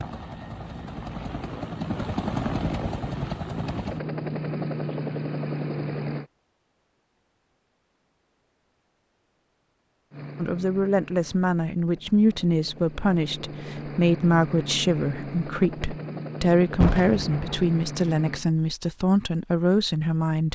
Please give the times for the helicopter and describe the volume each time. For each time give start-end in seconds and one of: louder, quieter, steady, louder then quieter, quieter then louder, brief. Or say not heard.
0.0-6.2 louder
10.1-18.4 louder.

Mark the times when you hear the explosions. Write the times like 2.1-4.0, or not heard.
16.8-17.6.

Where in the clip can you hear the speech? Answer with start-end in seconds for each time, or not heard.
10.3-20.4.